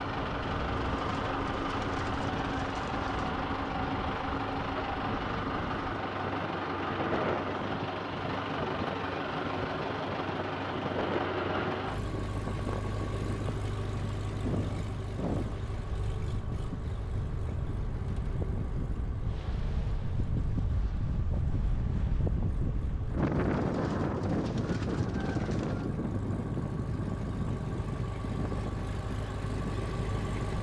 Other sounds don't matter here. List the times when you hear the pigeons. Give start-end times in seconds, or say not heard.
0.7-3.4, 23.1-25.9.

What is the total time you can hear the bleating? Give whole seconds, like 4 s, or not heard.
not heard.